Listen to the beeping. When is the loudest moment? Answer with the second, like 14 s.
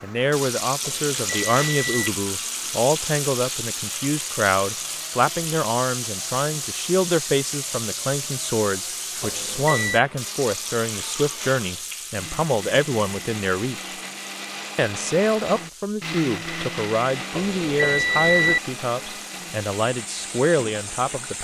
18 s.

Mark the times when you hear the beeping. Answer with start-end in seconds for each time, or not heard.
0.8-2.1, 9.2-10.1, 17.3-18.6.